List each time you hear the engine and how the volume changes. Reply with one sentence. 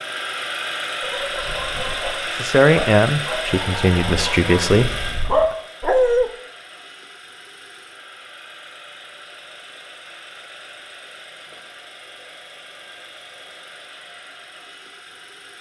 The engine can be heard from 0.0 to 15.5 s, getting quieter.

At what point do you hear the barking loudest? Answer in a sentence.
The volume of the barking peaks at 6 seconds.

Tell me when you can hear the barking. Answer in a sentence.
The barking can be heard from 1.0 to 6.3 s.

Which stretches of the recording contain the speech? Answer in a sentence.
The speech can be heard from 2.4 to 5.5 s.